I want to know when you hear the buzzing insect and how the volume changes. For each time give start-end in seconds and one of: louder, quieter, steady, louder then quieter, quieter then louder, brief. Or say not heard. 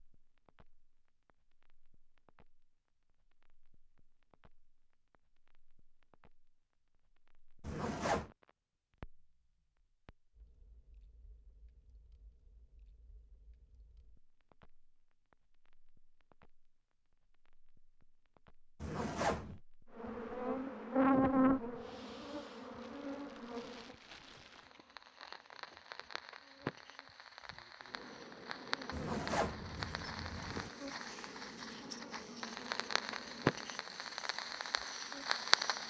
19.9-35.8 quieter.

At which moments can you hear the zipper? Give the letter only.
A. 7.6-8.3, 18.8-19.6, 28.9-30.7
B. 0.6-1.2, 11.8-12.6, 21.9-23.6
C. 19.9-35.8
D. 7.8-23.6
A.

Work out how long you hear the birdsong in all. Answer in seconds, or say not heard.
not heard.